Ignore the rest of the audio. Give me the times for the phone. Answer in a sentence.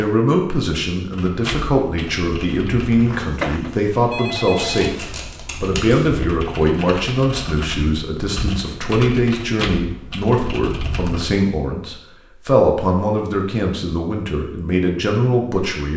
The phone can be heard from 3.0 to 5.0 s.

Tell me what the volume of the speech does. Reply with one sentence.
The volume of the speech stays about the same.